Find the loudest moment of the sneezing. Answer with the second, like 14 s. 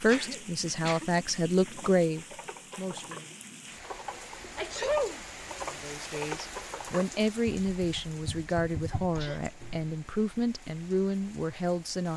5 s.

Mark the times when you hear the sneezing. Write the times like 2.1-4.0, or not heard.
0.1-1.1, 4.5-5.2, 8.9-9.4.